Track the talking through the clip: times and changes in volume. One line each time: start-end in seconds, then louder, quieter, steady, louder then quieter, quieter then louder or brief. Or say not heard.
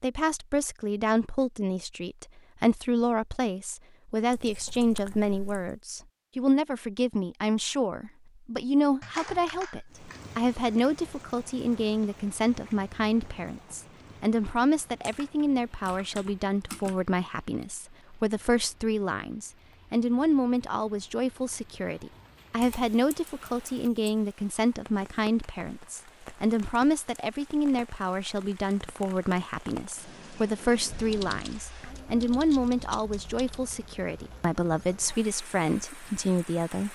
0.0-36.8 steady.